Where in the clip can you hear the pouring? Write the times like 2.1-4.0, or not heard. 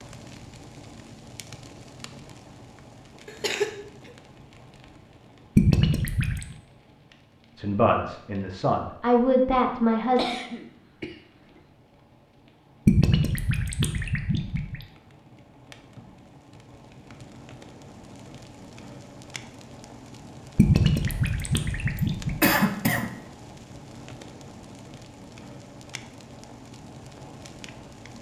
5.5-6.5, 12.8-14.8, 20.6-22.5.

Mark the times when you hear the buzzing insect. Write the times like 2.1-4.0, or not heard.
not heard.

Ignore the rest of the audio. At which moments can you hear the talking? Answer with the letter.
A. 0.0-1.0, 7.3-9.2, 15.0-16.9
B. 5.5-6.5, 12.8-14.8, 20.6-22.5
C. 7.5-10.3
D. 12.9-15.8
C.